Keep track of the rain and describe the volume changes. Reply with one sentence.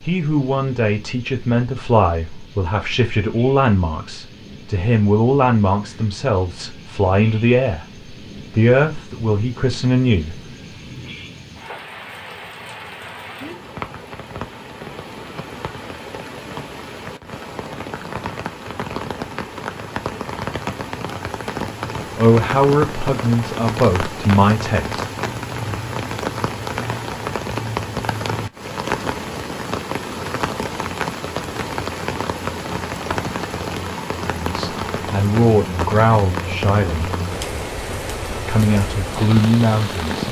The loudness of the rain goes up.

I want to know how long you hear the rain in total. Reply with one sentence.
You can hear the rain for 40 seconds altogether.